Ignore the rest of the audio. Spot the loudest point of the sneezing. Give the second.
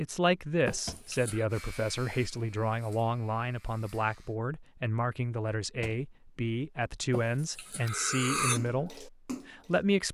8 s.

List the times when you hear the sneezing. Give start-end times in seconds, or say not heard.
0.7-1.4, 7.1-8.6.